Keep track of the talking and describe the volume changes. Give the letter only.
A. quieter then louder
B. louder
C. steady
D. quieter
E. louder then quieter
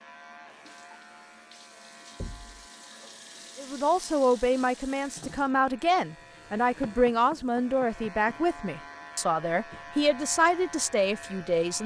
C.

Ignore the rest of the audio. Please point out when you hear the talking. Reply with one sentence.
The talking can be heard from 3.5 to 11.8 s.